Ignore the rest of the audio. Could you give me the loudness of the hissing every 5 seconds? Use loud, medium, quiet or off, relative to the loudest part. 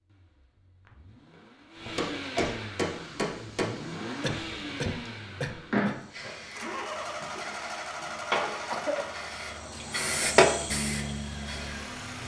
quiet, medium, loud.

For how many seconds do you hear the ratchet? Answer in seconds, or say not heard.
not heard.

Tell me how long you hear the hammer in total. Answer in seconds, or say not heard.
2 s.